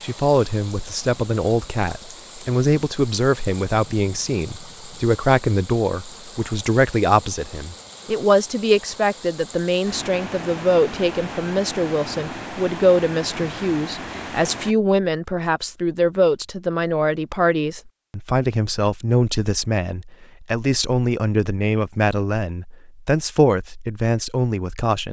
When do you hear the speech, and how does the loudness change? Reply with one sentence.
The speech can be heard from 0.0 to 25.0 s, at a steady volume.